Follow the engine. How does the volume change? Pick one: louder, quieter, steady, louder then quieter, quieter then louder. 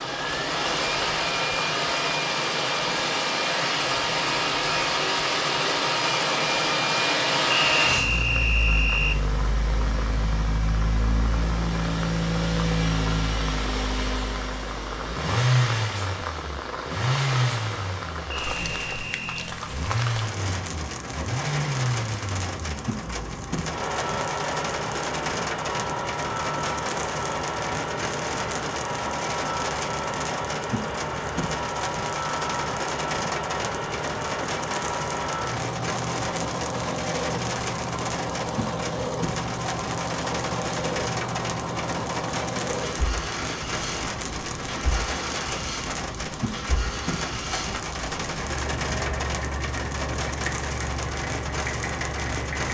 quieter.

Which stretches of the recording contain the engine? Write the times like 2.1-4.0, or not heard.
0.0-52.6.